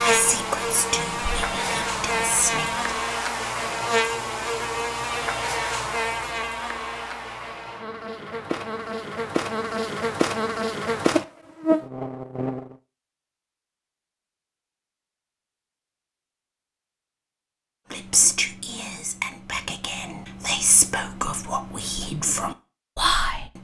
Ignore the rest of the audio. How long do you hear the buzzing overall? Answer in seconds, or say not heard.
13 s.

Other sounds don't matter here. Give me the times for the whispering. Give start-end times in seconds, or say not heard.
0.0-3.0, 17.9-23.6.